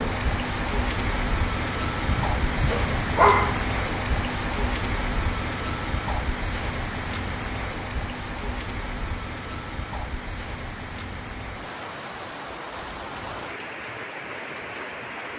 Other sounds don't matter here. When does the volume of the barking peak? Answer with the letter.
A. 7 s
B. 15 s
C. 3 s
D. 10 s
C.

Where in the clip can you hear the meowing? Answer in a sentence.
You can't hear the meowing here.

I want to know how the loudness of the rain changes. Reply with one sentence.
The loudness of the rain goes down.